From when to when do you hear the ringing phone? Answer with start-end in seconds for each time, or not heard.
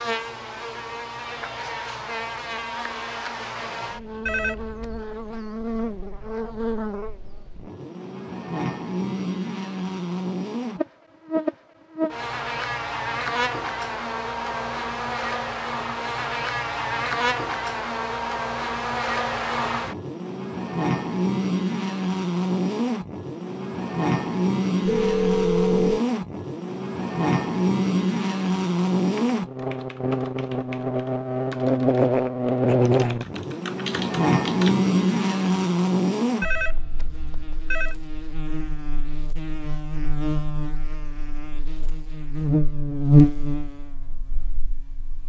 4.2-5.0, 24.9-26.0, 36.4-38.0.